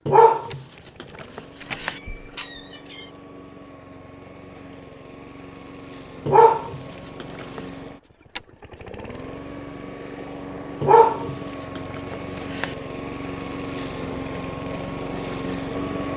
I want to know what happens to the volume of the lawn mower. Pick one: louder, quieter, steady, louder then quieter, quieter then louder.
louder.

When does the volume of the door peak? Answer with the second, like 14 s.
2 s.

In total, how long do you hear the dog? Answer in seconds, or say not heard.
5 s.